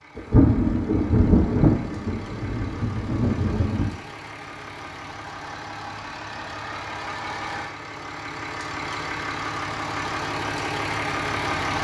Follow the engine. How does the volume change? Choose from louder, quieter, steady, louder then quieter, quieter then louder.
louder.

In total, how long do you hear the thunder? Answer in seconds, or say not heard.
4 s.